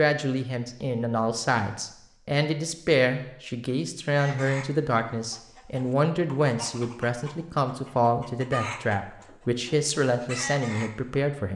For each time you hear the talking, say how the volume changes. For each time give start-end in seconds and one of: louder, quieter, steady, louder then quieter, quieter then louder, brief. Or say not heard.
0.0-11.5 steady.